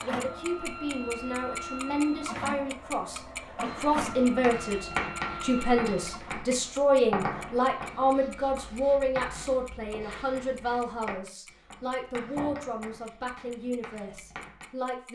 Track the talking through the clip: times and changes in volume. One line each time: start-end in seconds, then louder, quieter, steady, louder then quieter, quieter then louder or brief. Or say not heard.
0.0-15.1 louder then quieter.